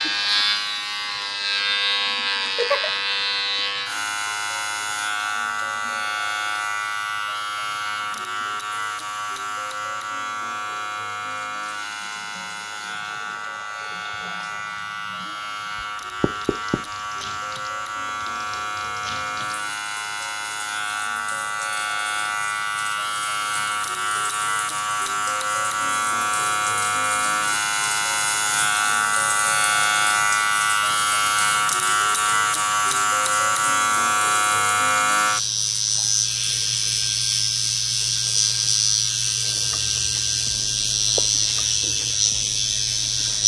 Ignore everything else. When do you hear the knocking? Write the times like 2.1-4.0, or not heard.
15.8-16.9.